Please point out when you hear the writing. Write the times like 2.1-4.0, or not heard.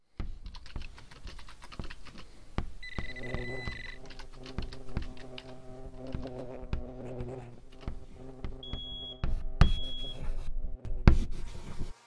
0.1-11.9.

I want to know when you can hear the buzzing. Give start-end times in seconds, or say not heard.
3.0-12.0.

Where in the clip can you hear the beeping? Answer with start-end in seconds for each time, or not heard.
2.8-4.0, 8.6-10.2.